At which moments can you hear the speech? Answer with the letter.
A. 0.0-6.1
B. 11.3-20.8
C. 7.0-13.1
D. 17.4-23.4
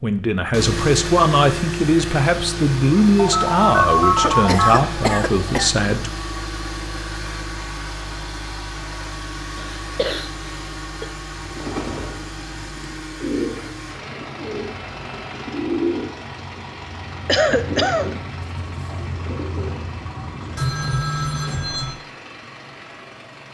A.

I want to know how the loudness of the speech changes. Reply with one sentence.
The loudness of the speech stays about the same.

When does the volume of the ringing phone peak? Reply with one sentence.
The loudest moment of the ringing phone is at 4 seconds.